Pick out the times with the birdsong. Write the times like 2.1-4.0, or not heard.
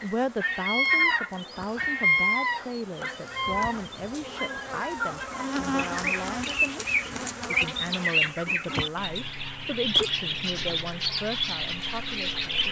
0.0-12.6.